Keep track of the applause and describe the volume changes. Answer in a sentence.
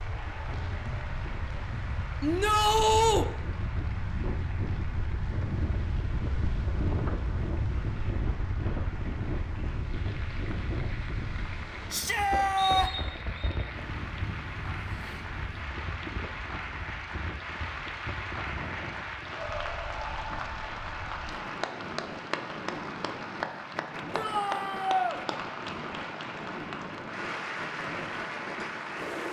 The loudness of the applause goes up.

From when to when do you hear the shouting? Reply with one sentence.
You can hear the shouting from 2.2 to 3.2 s, from 11.9 to 12.9 s and from 24.1 to 25.2 s.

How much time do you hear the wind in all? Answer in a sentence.
The wind can be heard for 29 seconds in total.